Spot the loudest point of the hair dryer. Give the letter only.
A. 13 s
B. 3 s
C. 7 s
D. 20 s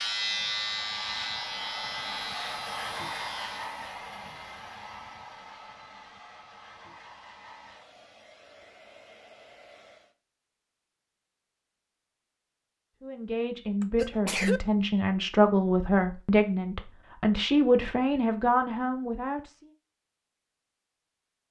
B.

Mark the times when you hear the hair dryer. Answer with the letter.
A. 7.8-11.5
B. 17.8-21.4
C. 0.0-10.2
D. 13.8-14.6
C.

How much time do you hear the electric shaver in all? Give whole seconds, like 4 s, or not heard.
4 s.